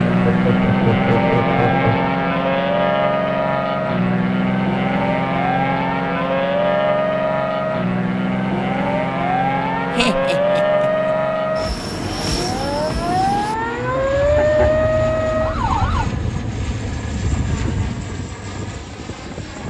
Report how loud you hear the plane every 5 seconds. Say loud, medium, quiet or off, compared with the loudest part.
loud, loud, medium, medium.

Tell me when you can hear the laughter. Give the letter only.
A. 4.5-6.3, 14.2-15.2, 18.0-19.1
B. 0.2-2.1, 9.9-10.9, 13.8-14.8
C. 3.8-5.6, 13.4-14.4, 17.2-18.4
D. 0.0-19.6
B.